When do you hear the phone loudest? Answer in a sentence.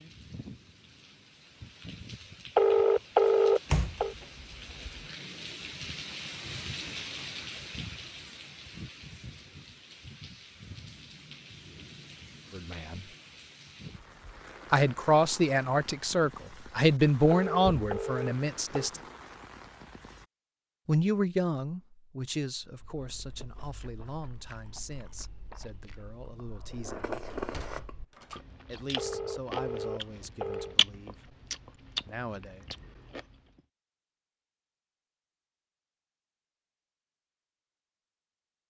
The loudest moment of the phone is at 3 seconds.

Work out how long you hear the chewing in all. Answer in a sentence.
You can hear the chewing for 11 seconds altogether.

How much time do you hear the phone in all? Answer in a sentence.
The phone can be heard for 5 seconds in total.